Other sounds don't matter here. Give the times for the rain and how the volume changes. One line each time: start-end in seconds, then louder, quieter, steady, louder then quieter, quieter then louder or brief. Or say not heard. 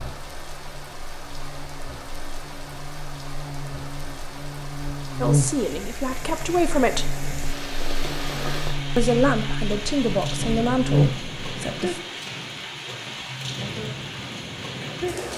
0.0-15.3 louder.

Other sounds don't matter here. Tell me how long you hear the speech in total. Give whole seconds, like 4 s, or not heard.
5 s.